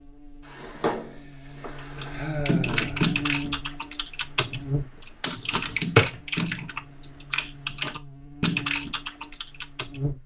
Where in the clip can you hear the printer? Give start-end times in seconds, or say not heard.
not heard.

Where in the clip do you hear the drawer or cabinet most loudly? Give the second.
6 s.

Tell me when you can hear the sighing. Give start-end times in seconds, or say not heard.
1.0-3.1.